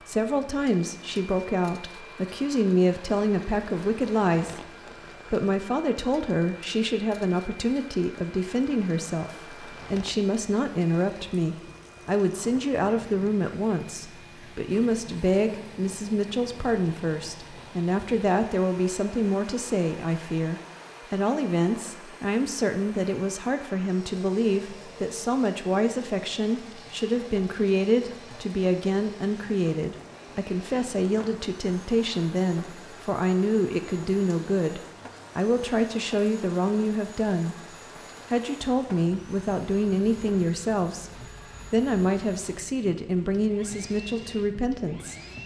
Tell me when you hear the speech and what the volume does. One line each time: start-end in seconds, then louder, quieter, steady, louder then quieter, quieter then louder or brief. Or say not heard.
0.0-45.1 steady.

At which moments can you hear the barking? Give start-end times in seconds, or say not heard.
not heard.